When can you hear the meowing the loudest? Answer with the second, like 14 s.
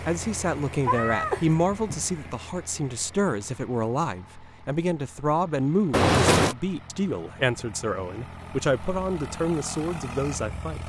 6 s.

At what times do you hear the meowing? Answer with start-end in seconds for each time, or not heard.
0.8-2.4, 5.9-6.5.